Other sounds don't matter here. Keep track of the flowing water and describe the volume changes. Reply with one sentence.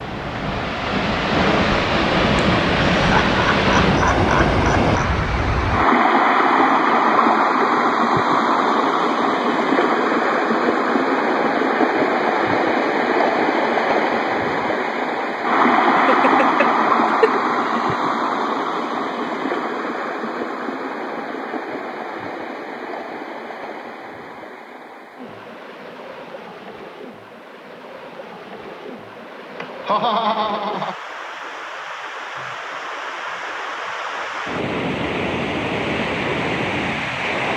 The volume of the flowing water goes down, then up.